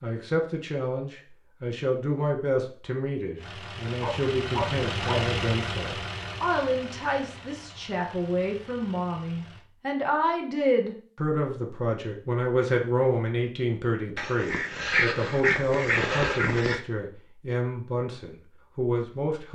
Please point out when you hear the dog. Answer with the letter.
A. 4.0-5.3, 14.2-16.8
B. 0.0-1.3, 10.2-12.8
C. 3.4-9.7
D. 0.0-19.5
A.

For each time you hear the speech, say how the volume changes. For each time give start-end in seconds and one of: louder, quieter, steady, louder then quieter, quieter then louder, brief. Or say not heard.
0.0-19.5 steady.